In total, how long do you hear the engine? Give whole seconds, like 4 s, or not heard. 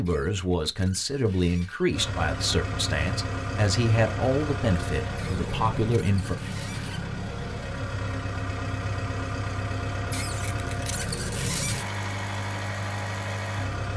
12 s.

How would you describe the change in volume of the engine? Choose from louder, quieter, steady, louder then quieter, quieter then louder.
steady.